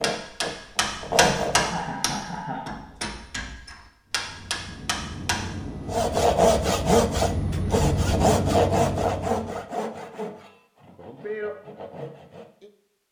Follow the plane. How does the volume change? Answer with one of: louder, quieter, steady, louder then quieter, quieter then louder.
louder.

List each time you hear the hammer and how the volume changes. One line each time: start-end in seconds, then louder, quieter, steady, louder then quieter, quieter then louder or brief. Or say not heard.
0.0-5.5 quieter then louder.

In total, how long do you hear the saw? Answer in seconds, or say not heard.
9 s.